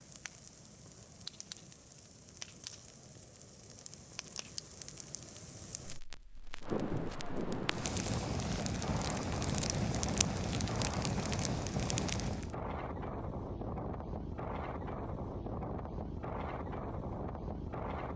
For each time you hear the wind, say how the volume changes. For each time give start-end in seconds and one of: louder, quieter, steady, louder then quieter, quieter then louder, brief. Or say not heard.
6.6-18.1 steady.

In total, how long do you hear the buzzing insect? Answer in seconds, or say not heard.
not heard.